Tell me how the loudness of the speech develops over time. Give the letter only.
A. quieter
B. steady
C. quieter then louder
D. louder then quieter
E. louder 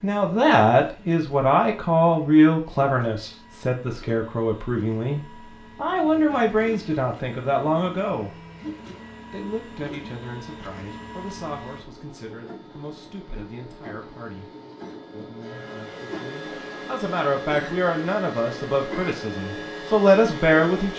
C.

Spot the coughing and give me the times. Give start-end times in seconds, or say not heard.
not heard.